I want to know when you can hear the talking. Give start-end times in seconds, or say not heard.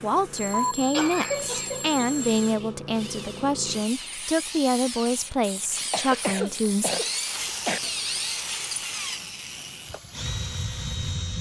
0.0-6.9.